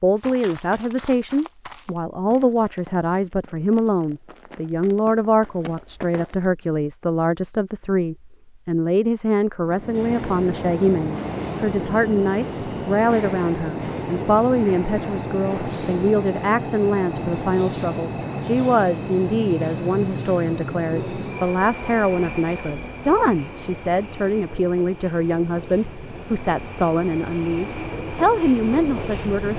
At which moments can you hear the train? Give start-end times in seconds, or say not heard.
9.6-29.5.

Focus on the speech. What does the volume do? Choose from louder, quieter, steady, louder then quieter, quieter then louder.
steady.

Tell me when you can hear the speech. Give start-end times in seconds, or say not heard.
0.0-29.5.